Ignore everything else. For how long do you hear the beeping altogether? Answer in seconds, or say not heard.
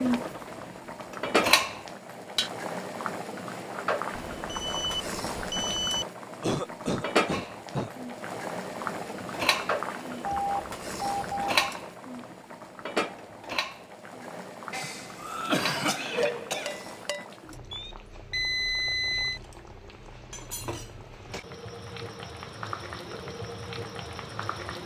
5 s.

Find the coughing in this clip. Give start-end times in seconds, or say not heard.
6.4-7.9, 14.7-17.1.